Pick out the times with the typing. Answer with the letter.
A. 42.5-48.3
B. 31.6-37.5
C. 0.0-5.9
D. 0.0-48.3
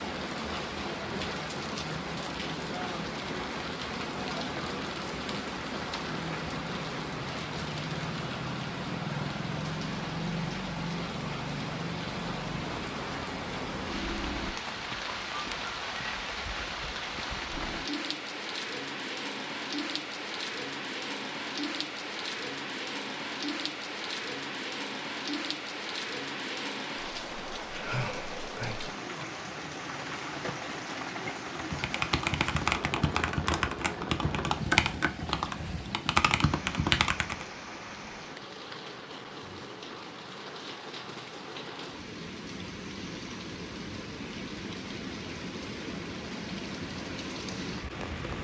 B.